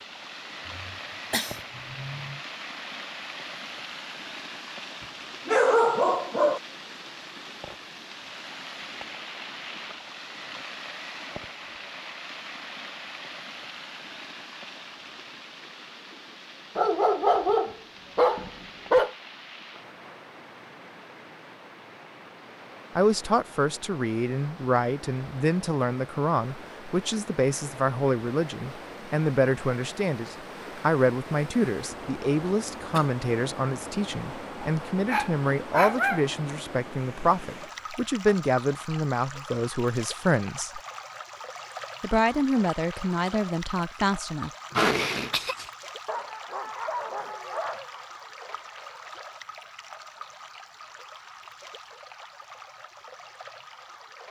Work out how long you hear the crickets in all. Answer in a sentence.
The crickets can't be heard in this clip.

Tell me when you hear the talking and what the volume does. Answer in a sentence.
You can hear the talking from 22.9 to 40.8 s, at a steady volume; and briefly from 42.0 to 44.5 s.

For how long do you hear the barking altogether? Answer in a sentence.
The barking can be heard for 8 seconds in total.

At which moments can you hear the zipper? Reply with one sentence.
You can't hear the zipper here.